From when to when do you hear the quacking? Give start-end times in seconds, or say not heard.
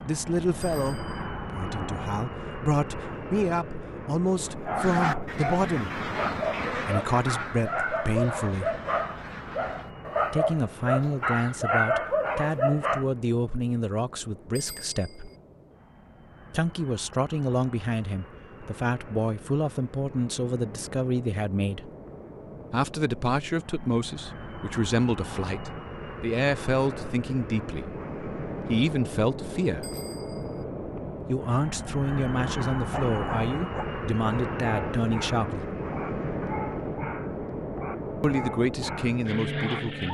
4.8-9.9.